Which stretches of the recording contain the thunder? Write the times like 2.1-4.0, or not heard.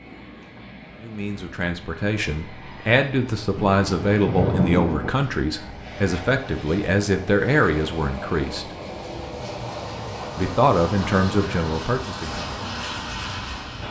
3.5-5.1.